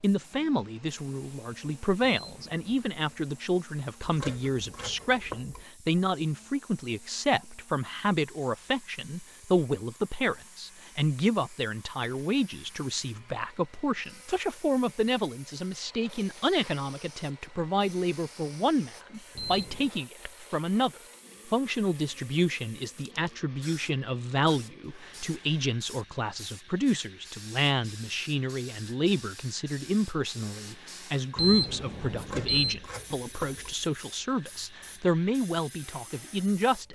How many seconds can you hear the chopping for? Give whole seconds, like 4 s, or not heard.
3 s.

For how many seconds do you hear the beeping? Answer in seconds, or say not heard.
3 s.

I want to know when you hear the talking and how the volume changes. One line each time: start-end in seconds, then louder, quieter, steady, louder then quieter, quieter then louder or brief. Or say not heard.
0.0-36.8 steady.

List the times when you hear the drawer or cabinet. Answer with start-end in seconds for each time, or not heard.
not heard.